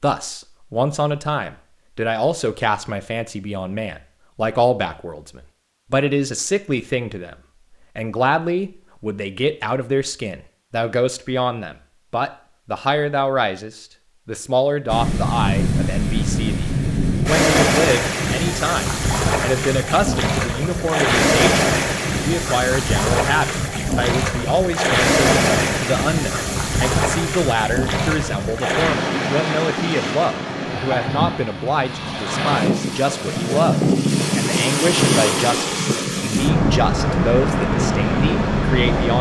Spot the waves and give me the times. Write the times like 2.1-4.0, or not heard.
14.8-39.1.